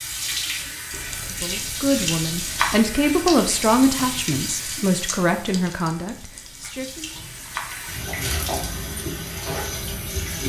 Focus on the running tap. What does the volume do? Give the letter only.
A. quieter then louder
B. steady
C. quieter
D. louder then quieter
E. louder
A.